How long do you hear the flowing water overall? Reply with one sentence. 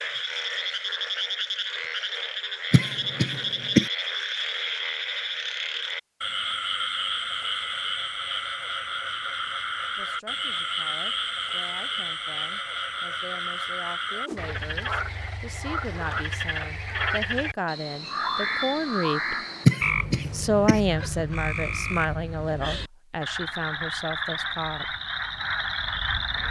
You can't hear the flowing water here.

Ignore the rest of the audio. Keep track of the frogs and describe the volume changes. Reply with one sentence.
The volume of the frogs stays about the same.